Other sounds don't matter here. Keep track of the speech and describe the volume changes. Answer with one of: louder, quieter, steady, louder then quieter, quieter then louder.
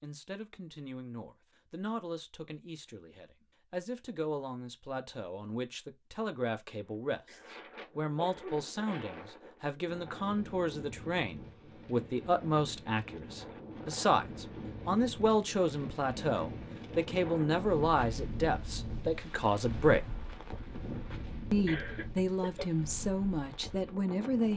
louder.